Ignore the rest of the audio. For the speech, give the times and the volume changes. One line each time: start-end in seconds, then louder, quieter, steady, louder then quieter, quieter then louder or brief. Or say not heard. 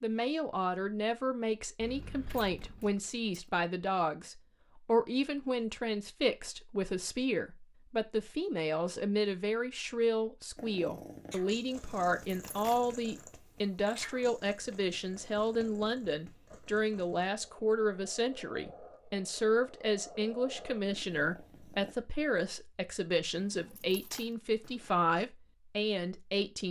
0.0-26.6 steady.